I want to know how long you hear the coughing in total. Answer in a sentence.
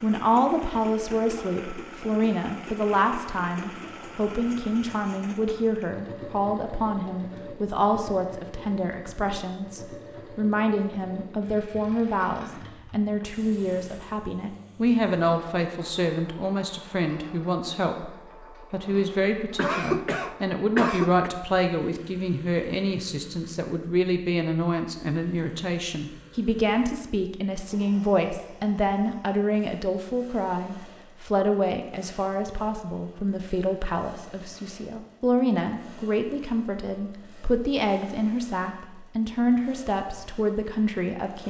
The coughing can be heard for 2 seconds in total.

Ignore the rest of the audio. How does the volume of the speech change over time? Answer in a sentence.
The volume of the speech stays about the same.